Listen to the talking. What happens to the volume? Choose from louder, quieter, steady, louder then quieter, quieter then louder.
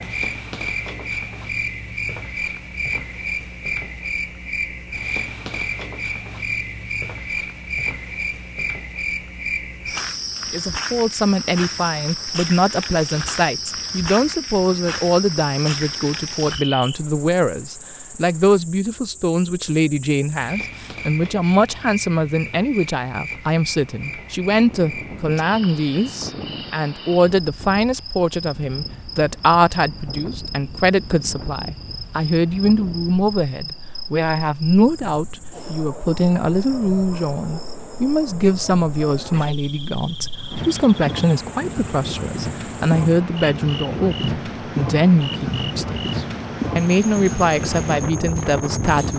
steady.